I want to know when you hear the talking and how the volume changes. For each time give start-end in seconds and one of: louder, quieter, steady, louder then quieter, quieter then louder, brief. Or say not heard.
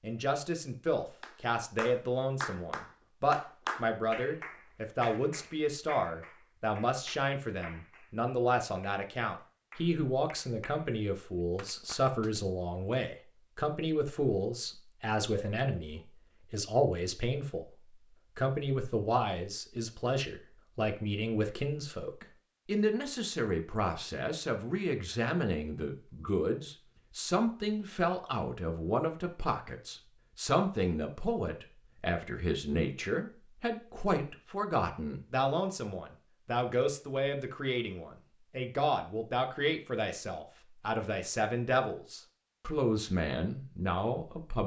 0.0-17.7 steady
18.4-44.6 steady.